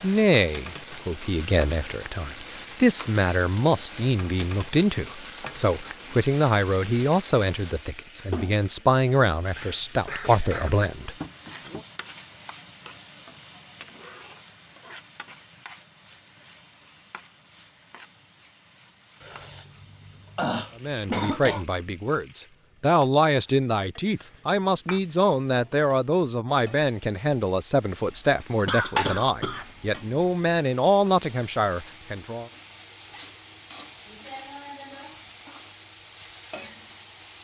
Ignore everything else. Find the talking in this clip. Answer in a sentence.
The talking can be heard from 0.0 to 11.8 s and from 20.8 to 32.5 s.